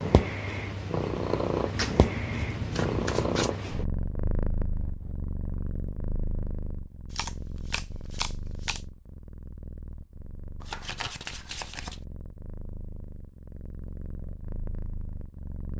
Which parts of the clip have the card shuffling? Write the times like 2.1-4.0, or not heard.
1.7-3.5, 7.1-8.8, 10.6-12.0.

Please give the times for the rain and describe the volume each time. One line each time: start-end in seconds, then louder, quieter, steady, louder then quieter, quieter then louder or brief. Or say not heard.
not heard.